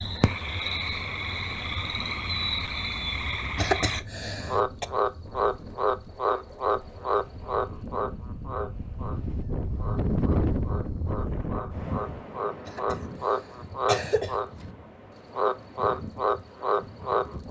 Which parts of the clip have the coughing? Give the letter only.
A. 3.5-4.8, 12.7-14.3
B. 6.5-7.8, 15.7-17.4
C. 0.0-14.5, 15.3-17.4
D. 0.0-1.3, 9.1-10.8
A.